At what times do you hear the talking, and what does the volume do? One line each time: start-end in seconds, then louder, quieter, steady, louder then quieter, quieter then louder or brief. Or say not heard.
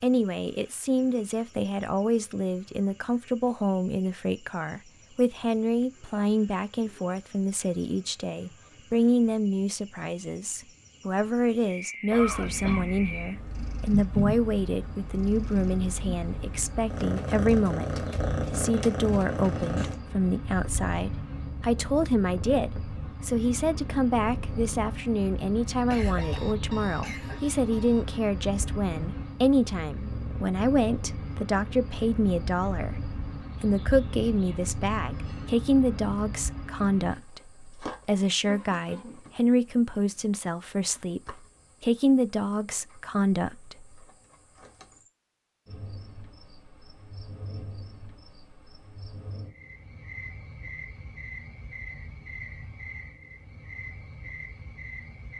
0.0-44.0 steady.